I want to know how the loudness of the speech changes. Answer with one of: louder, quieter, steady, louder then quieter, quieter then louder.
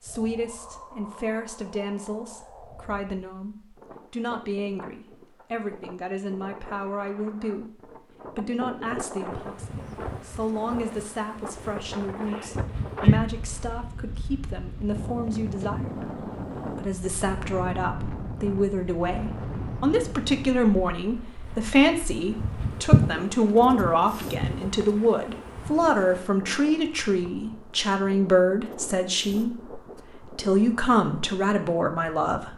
louder.